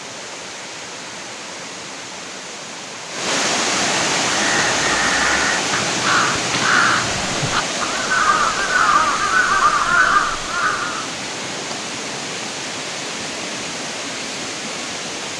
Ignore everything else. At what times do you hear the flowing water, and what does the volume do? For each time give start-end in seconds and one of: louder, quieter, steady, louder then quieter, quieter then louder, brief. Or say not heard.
0.0-15.3 louder then quieter.